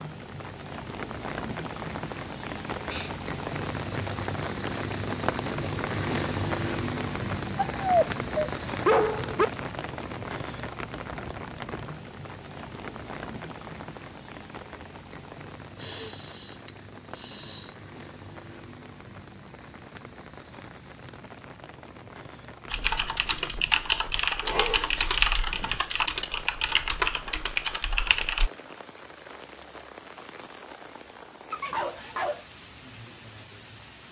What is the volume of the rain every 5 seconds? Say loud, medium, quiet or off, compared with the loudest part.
loud, loud, medium, quiet, quiet, quiet, quiet.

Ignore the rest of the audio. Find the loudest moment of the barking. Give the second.
9 s.